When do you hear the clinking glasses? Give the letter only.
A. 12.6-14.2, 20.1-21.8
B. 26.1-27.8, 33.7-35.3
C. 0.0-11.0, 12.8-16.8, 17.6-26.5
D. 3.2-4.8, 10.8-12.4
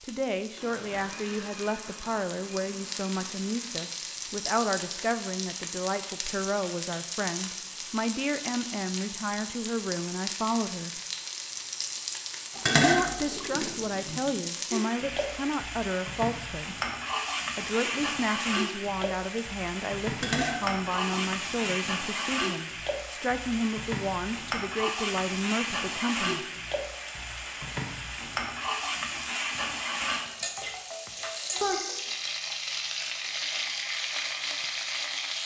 A.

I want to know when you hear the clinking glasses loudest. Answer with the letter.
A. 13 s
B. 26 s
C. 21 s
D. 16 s
A.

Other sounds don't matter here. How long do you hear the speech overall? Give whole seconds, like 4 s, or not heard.
24 s.